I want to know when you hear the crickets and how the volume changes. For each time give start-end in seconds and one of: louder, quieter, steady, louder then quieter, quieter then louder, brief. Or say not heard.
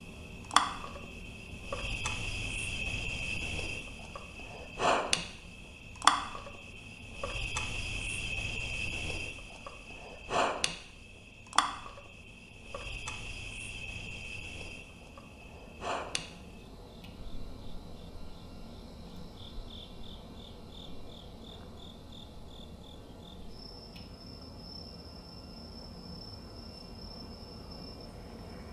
0.0-28.6 quieter.